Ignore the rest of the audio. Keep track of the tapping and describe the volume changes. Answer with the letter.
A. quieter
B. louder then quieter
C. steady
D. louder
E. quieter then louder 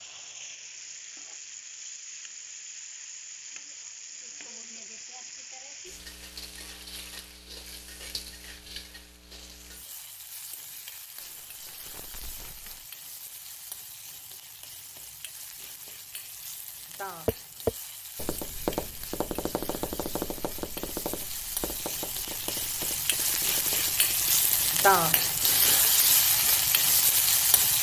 A.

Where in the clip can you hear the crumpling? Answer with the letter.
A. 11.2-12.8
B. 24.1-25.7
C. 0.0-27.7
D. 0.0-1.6
A.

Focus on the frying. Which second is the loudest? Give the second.
25 s.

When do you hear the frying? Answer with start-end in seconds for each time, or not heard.
0.0-27.7.